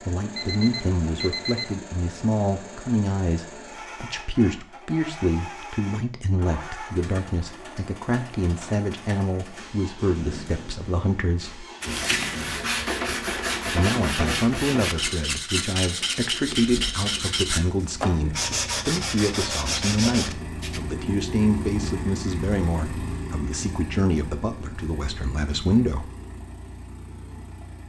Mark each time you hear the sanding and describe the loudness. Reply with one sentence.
The sanding can be heard from 11.8 to 20.8 s, at a steady volume.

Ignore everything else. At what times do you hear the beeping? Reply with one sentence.
The beeping can be heard from 0.3 to 1.8 s.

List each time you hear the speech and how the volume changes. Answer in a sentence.
You can hear the speech from 0.1 to 11.7 s, at a steady volume; and from 13.7 to 26.1 s, at a steady volume.